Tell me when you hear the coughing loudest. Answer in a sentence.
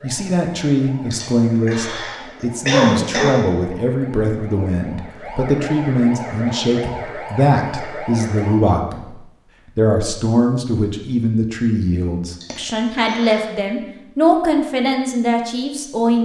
The loudest moment of the coughing is at 3 seconds.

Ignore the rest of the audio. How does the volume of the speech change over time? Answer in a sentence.
The volume of the speech stays about the same.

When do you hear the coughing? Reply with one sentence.
The coughing can be heard from 1.1 to 3.4 s and from 12.4 to 13.6 s.